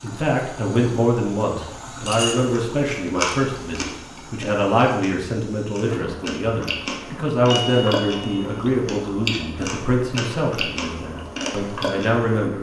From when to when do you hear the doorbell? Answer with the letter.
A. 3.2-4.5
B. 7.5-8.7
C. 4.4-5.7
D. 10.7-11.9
B.